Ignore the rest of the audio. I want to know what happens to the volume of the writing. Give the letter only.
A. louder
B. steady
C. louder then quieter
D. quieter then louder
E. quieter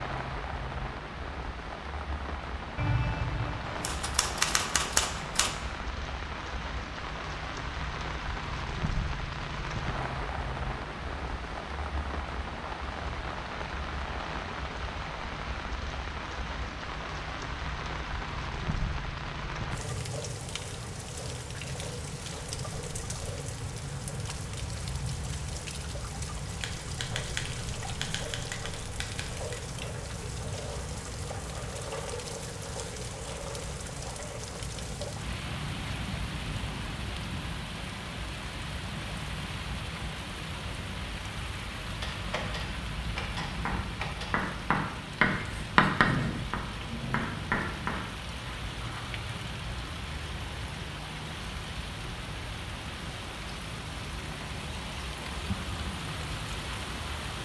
C.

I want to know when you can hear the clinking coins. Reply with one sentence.
You can't hear the clinking coins here.